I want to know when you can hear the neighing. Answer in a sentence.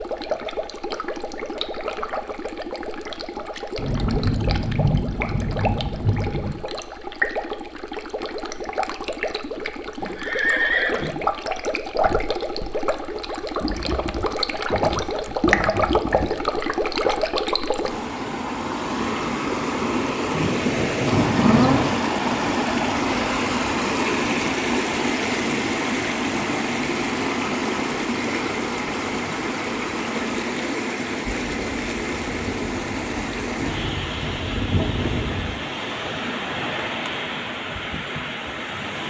You can hear the neighing from 10.0 to 11.2 s.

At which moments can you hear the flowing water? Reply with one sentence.
You can hear the flowing water from 0.0 to 39.0 s.